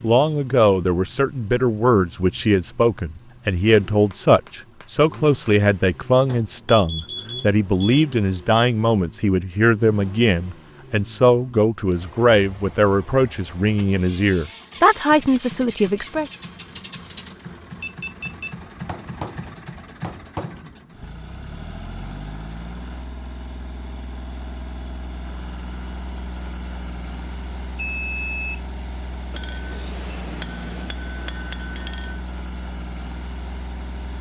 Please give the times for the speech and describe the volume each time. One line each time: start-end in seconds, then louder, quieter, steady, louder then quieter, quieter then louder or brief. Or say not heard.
0.0-16.3 steady.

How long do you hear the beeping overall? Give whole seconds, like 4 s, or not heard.
4 s.